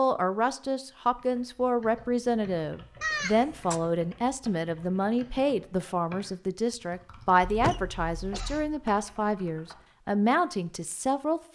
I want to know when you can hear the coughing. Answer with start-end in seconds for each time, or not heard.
3.0-3.8, 7.4-8.8.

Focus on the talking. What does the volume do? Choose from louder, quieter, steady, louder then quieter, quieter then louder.
steady.